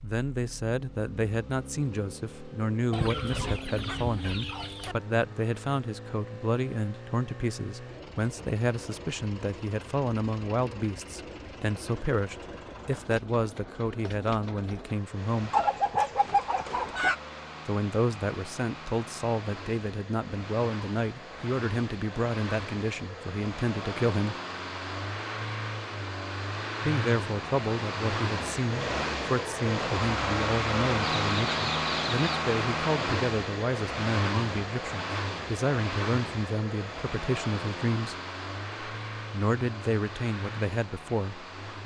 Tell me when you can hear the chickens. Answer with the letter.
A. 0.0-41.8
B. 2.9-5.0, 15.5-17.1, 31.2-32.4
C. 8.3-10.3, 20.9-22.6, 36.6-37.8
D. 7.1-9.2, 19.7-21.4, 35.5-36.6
B.